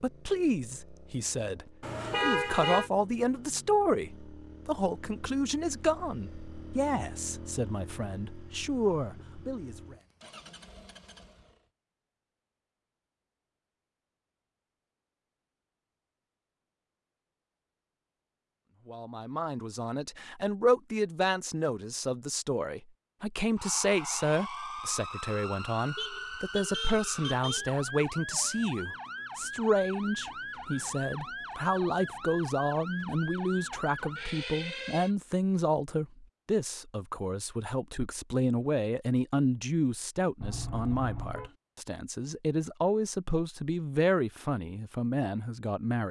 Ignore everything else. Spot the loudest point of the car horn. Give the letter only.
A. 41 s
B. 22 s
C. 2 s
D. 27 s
C.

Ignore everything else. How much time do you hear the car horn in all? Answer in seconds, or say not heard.
4 s.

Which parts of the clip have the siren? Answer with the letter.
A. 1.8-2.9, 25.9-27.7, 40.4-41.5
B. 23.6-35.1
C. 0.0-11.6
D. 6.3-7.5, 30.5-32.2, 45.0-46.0
B.